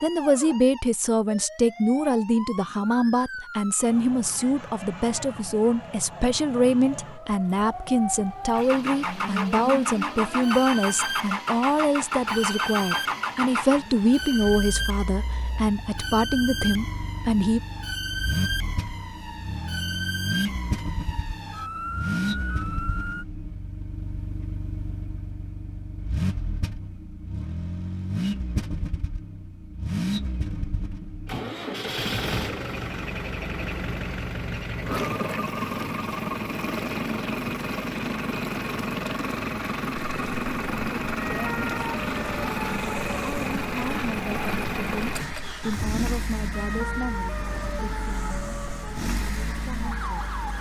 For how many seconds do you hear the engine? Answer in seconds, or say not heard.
42 s.